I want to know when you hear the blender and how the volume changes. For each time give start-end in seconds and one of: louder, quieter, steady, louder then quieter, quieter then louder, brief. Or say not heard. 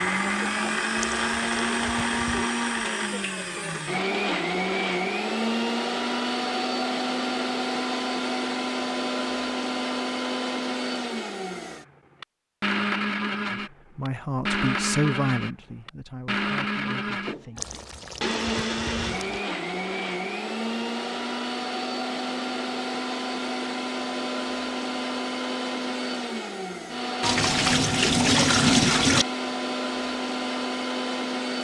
0.0-31.5 steady.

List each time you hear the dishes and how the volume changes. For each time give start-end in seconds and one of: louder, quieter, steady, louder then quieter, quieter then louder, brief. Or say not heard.
not heard.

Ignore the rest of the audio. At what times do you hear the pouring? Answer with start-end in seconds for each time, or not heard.
0.9-2.5, 17.6-19.4, 27.2-29.2.